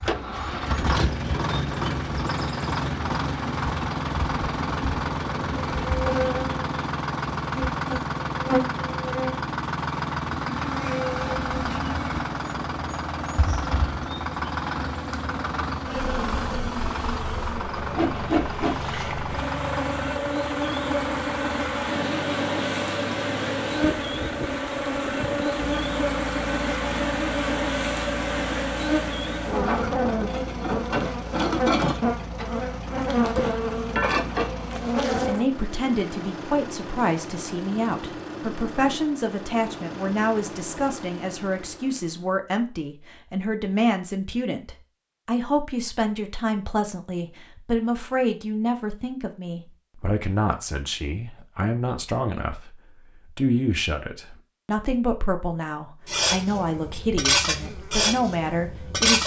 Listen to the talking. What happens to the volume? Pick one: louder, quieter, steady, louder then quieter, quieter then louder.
steady.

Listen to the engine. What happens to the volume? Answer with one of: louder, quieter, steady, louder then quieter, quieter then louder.
quieter.